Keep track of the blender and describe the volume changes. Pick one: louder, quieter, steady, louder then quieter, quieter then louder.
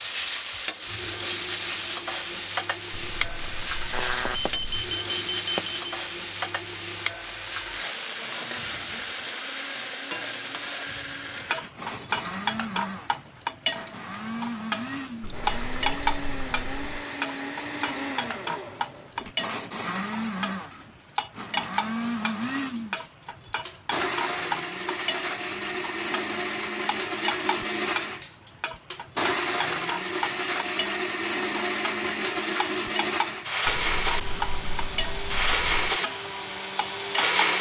louder.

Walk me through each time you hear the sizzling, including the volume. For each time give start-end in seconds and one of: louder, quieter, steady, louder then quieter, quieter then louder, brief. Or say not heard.
0.0-37.5 quieter.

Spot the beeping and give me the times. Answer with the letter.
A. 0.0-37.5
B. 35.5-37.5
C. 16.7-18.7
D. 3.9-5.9
D.